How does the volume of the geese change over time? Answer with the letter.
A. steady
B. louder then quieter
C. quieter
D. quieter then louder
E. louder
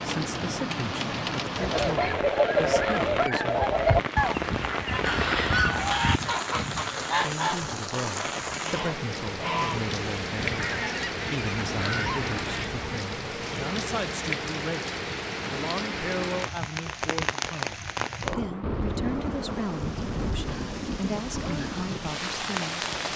C.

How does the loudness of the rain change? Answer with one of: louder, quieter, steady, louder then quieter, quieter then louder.
steady.